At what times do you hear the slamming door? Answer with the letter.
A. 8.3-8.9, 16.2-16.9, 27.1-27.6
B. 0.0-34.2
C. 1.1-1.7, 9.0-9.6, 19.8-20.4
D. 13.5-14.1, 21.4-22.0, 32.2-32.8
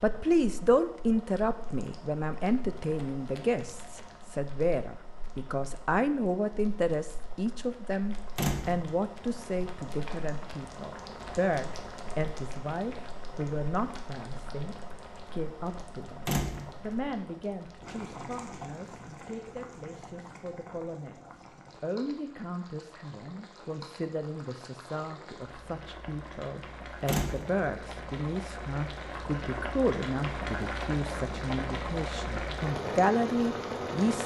A.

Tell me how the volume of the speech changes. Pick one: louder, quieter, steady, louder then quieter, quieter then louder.
quieter then louder.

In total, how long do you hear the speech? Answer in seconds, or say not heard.
34 s.